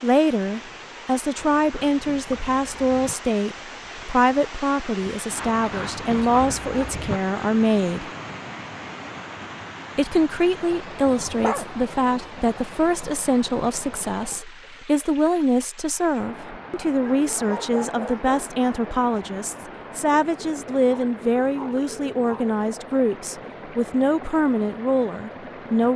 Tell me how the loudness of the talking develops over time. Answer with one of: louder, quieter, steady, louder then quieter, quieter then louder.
steady.